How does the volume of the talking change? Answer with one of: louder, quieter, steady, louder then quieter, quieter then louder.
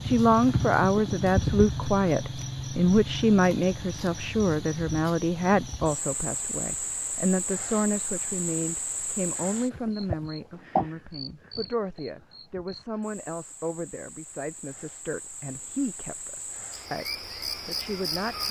quieter.